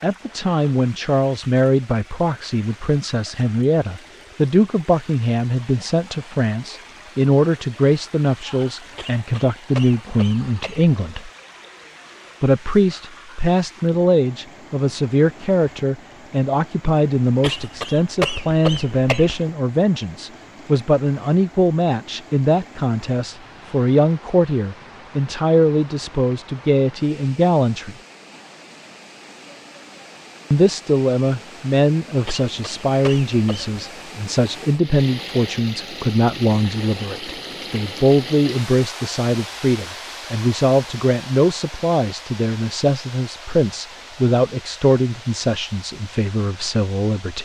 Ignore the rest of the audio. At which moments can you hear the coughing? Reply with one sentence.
You can hear the coughing from 8.9 to 10.9 s, from 17.4 to 19.4 s and from 32.2 to 33.8 s.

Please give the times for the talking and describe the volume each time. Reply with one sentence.
You can hear the talking from 0.0 to 11.3 s, at a steady volume; from 12.4 to 27.9 s, at a steady volume; and from 30.5 to 47.4 s, at a steady volume.